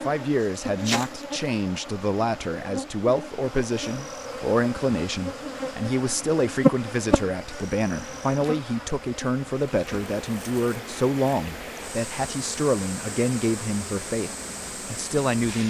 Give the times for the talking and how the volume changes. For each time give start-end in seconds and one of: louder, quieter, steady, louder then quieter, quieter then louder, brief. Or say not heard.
0.0-14.3 steady
14.9-15.6 brief.